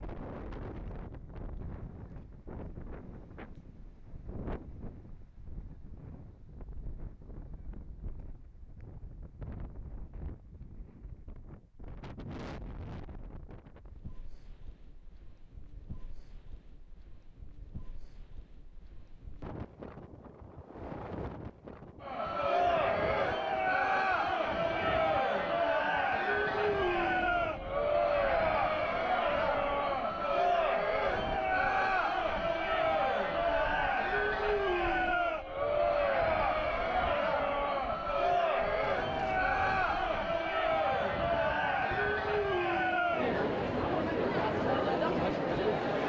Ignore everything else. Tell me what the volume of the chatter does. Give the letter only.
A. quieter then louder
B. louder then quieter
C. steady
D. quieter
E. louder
C.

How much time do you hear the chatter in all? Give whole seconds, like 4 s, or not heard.
24 s.